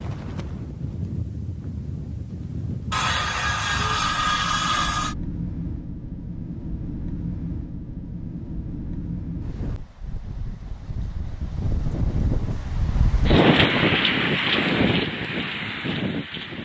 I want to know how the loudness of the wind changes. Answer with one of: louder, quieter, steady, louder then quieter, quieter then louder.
louder.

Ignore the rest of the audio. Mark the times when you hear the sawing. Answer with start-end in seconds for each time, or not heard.
2.9-5.2.